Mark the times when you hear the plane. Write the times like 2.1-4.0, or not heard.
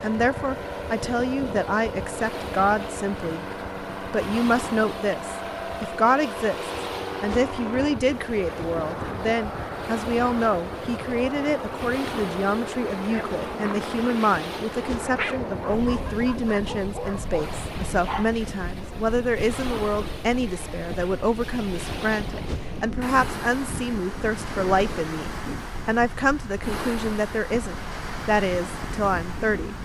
0.0-29.8.